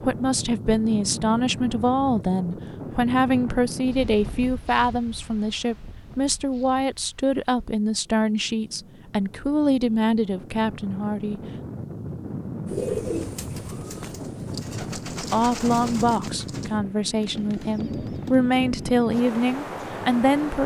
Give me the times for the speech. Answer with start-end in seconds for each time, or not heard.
0.0-11.4, 15.2-20.6.